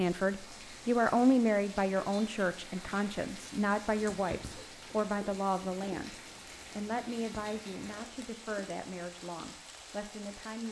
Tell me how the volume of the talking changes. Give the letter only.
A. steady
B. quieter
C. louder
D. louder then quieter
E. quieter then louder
B.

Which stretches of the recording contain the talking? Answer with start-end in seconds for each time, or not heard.
0.0-10.6.